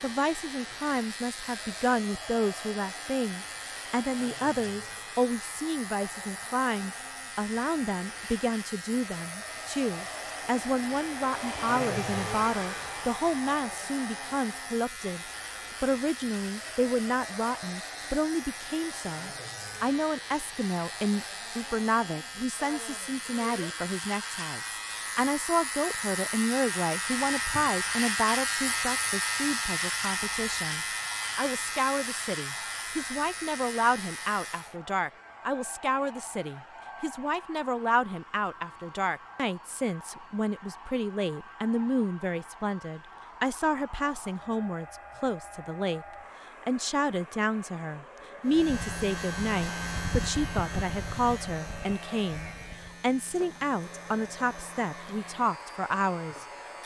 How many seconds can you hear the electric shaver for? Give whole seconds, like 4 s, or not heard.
43 s.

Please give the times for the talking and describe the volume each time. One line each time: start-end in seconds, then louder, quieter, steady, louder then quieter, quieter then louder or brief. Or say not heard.
0.0-56.8 steady.